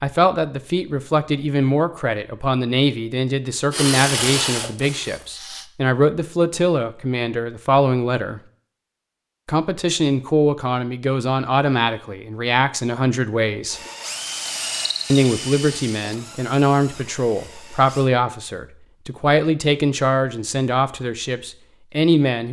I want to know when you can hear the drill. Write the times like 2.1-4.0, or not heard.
3.7-5.7, 13.7-18.1.